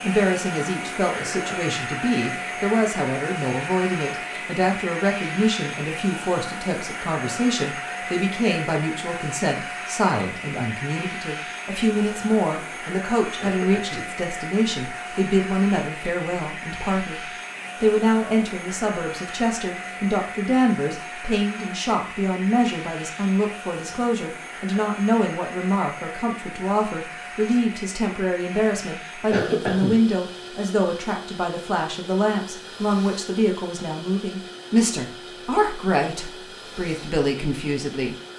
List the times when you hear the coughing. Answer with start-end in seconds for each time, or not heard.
1.1-1.8, 13.4-14.1, 29.3-29.9.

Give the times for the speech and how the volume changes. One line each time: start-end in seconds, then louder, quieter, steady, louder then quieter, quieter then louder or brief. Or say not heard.
0.0-38.1 steady.